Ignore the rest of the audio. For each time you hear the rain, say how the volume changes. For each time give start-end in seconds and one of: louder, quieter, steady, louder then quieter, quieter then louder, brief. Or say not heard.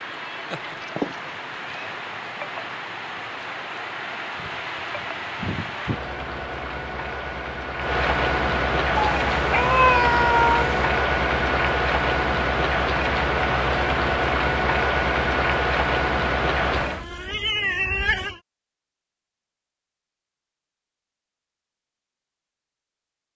0.0-17.1 louder.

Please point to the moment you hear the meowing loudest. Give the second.
10 s.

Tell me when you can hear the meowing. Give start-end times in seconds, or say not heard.
0.5-1.8, 8.9-10.8, 16.7-18.4.